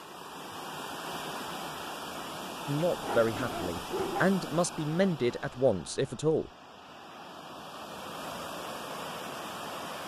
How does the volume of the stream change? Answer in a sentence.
The loudness of the stream goes down, then up.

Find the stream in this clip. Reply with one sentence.
You can hear the stream from 0.0 to 10.0 s.